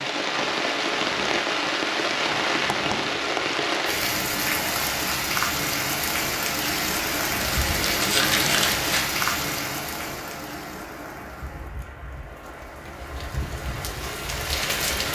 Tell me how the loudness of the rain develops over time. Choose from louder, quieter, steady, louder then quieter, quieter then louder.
quieter.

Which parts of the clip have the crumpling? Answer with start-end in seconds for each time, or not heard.
7.4-9.1.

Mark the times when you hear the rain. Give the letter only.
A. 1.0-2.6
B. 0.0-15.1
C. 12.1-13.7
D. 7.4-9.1
B.